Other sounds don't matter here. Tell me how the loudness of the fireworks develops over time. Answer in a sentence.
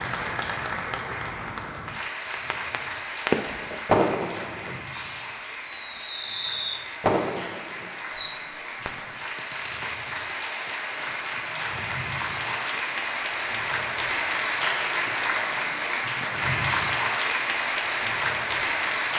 The loudness of the fireworks goes down.